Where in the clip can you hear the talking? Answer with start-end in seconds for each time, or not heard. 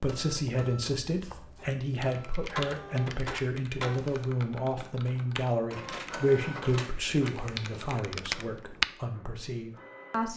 0.0-10.3.